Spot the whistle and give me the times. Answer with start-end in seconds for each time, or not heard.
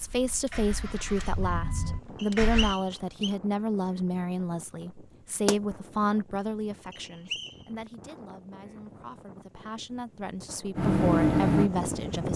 2.1-3.4, 6.9-7.7.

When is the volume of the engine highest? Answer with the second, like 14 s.
11 s.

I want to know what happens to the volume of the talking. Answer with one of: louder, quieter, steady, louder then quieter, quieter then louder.
quieter then louder.